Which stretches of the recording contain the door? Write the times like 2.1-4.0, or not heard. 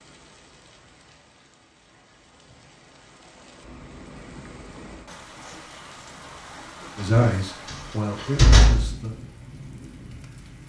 7.1-8.9.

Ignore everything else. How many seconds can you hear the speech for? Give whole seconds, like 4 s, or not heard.
2 s.